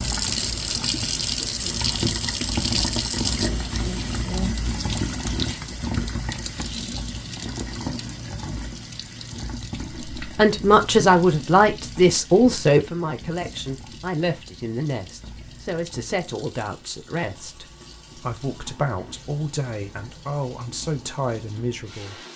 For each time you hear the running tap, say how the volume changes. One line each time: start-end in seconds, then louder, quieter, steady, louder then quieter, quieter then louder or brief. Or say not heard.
0.0-22.3 quieter.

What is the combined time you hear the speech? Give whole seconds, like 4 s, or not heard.
12 s.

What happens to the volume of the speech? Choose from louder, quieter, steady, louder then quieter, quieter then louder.
quieter.